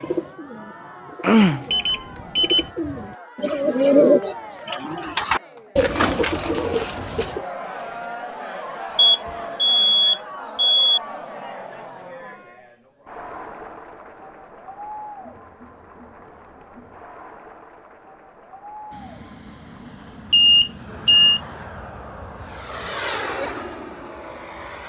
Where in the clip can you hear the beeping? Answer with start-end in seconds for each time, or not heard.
1.7-2.7, 8.9-11.0, 20.3-21.4.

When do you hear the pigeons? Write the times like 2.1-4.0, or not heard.
0.0-7.4.